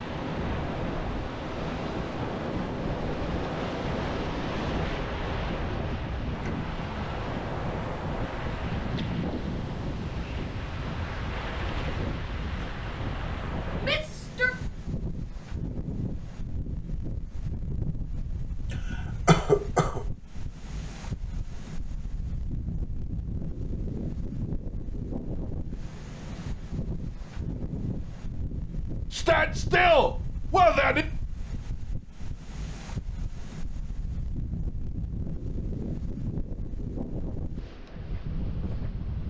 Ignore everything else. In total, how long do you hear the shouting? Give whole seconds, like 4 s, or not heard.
3 s.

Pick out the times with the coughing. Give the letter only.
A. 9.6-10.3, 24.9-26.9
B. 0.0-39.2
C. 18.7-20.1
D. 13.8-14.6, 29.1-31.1
C.